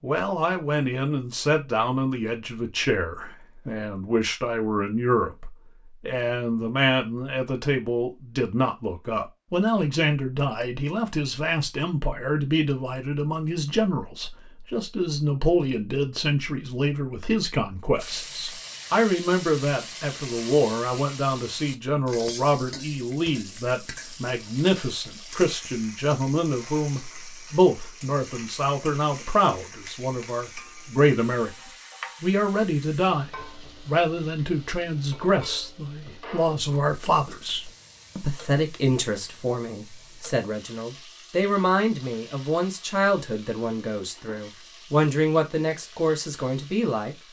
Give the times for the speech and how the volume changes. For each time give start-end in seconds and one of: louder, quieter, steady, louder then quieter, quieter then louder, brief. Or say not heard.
0.0-31.5 steady
32.2-47.1 steady.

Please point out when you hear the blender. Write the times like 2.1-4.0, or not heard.
not heard.